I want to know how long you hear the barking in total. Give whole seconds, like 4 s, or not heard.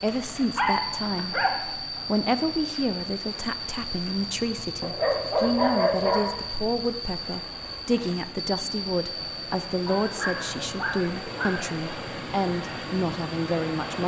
5 s.